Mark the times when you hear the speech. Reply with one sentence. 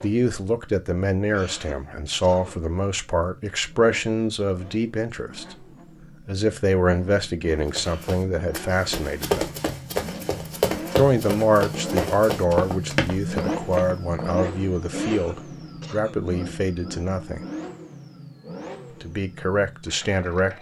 The speech can be heard from 0.0 to 9.5 s, from 10.9 to 17.4 s and from 19.0 to 20.5 s.